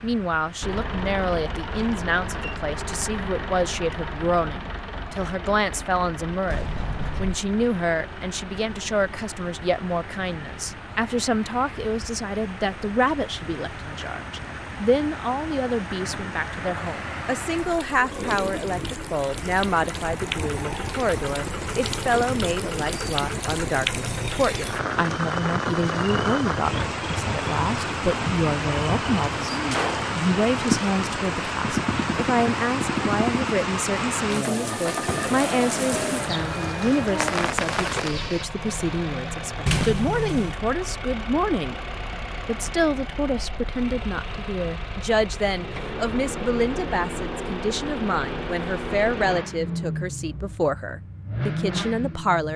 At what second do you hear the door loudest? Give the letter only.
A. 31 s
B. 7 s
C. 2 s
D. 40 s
D.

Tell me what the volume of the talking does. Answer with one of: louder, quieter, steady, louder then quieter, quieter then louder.
steady.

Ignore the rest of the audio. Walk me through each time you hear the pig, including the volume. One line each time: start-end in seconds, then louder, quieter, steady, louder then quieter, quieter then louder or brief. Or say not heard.
not heard.